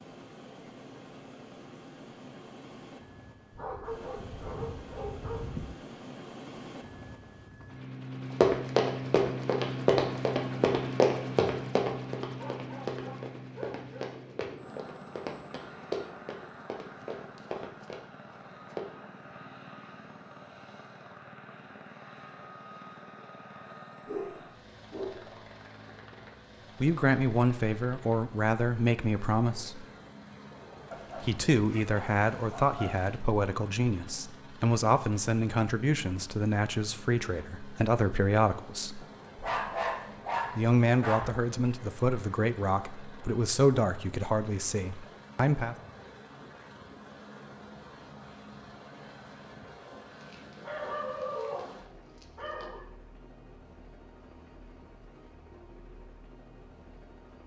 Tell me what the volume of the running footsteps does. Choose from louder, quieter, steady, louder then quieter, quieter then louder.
quieter.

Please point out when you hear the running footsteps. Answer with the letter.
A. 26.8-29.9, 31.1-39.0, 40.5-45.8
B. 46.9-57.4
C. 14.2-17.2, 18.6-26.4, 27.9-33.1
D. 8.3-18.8
D.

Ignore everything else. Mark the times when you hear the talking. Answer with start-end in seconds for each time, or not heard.
26.8-29.9, 31.1-39.0, 40.5-45.8.